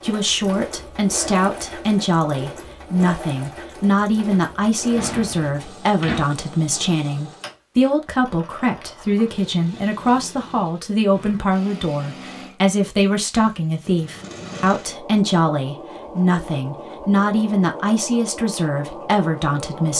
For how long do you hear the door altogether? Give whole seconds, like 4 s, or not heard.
2 s.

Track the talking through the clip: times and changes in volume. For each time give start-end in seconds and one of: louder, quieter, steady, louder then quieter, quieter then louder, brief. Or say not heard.
0.0-19.9 steady.